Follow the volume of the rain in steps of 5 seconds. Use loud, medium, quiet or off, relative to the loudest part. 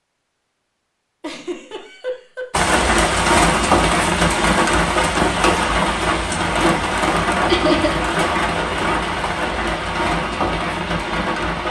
loud, loud, medium.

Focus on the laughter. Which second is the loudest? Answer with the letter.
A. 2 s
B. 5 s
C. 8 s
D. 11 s
C.